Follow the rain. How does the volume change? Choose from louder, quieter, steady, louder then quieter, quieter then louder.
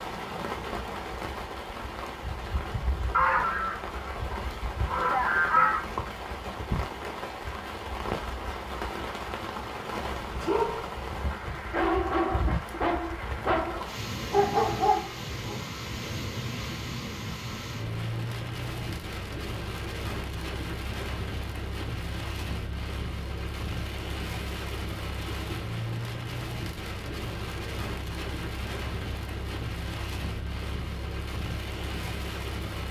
steady.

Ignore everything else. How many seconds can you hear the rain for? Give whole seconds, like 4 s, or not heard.
33 s.